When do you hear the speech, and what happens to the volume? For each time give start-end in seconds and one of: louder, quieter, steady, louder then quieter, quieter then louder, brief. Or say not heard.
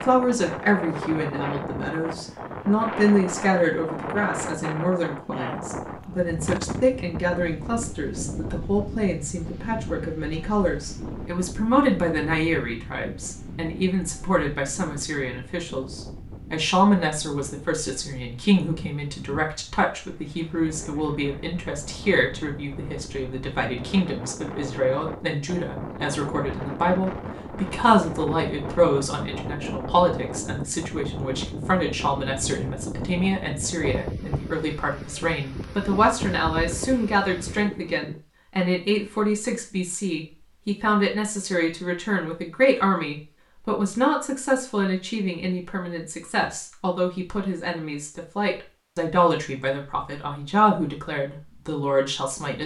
0.0-52.6 steady.